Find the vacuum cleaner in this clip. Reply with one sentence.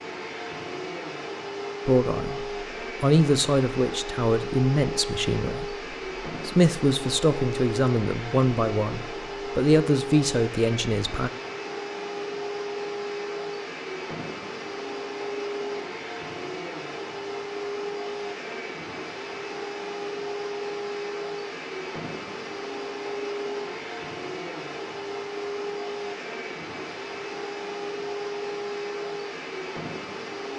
The vacuum cleaner can be heard from 0.0 to 30.5 s.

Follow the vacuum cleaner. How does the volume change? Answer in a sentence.
The loudness of the vacuum cleaner stays about the same.